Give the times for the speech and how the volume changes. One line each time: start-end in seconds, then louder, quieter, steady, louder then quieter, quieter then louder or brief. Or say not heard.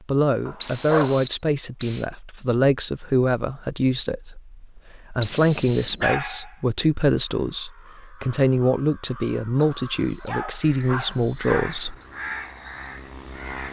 0.1-11.9 steady.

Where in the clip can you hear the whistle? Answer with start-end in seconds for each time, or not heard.
0.6-2.1, 5.2-6.0, 9.6-12.2.